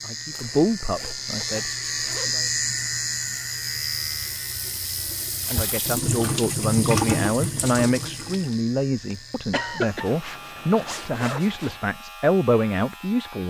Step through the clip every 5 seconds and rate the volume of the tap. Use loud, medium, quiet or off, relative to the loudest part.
quiet, loud, off.